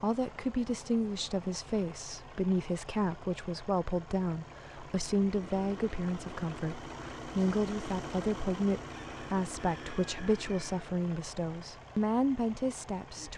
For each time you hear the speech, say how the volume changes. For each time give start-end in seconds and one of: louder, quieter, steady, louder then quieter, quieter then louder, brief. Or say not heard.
0.0-13.3 steady.